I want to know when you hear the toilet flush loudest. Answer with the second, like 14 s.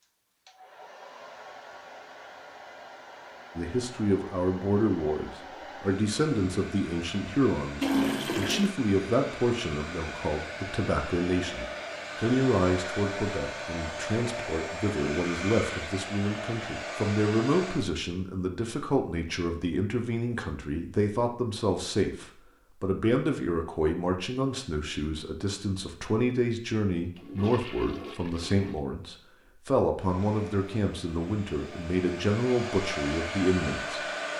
8 s.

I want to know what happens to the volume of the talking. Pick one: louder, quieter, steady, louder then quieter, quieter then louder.
steady.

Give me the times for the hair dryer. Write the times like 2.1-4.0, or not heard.
0.0-17.9, 29.9-34.3.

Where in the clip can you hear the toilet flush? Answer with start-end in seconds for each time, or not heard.
7.8-8.8, 27.1-28.8.